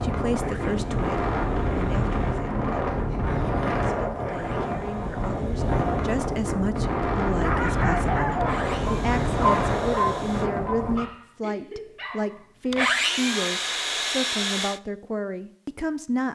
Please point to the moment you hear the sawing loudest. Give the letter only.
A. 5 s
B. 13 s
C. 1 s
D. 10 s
B.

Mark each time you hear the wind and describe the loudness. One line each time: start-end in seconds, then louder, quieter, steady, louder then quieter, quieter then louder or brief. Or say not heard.
0.0-11.1 steady.